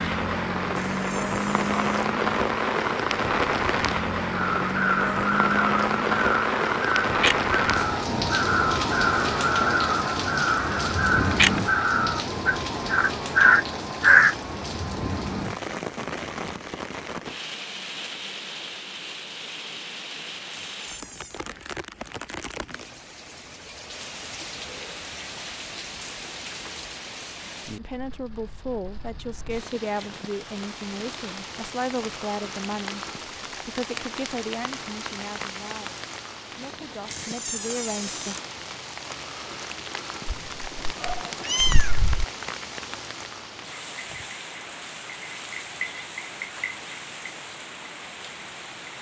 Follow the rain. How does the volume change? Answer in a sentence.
The volume of the rain goes down.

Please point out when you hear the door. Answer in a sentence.
You can hear the door from 0.8 to 1.9 s, from 20.5 to 21.4 s and from 37.1 to 38.5 s.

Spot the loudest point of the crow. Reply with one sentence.
The loudest moment of the crow is at 14 seconds.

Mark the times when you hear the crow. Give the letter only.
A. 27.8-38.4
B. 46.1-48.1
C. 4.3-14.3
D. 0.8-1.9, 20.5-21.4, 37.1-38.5
C.